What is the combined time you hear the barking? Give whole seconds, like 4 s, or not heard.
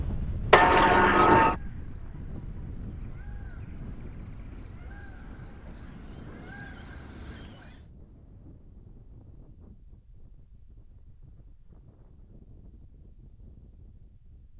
not heard.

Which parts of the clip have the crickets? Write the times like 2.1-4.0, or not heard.
0.1-7.8.